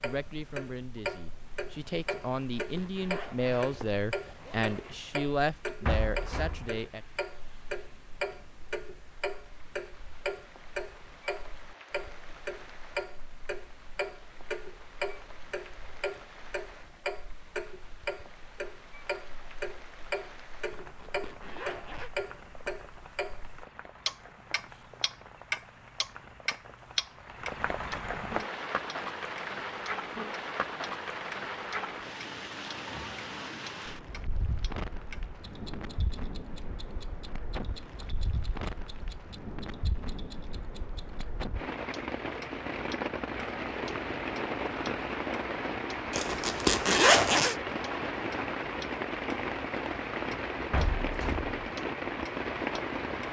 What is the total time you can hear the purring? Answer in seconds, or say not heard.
not heard.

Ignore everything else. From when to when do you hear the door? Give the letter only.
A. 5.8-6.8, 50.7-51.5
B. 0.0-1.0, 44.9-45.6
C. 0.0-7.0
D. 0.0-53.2
A.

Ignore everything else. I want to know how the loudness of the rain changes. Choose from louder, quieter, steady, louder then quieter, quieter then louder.
louder.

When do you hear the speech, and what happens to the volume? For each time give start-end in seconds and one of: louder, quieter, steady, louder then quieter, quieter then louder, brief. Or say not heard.
0.0-7.0 louder.